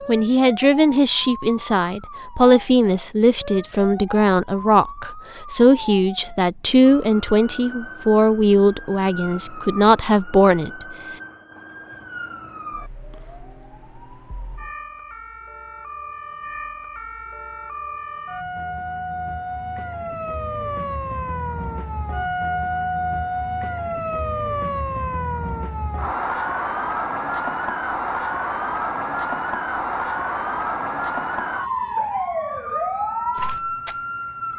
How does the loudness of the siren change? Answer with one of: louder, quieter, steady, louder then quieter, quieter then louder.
louder.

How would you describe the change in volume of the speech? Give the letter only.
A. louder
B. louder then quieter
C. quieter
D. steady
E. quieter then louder
D.